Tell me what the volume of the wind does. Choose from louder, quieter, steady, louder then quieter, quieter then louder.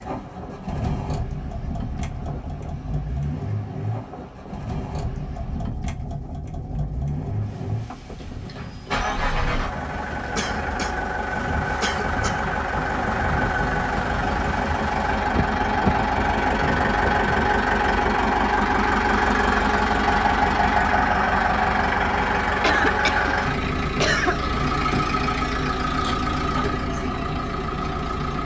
louder.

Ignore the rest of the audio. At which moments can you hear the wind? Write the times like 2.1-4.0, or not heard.
0.0-17.1.